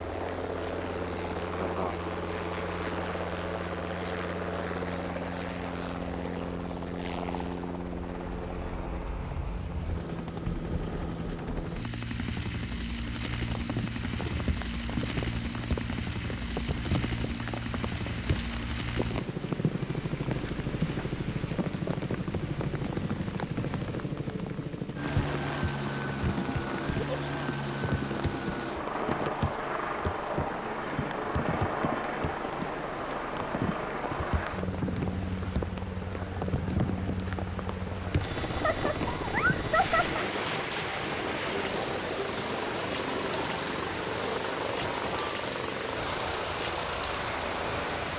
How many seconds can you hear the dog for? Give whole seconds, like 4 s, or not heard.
not heard.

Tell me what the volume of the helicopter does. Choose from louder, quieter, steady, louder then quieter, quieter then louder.
steady.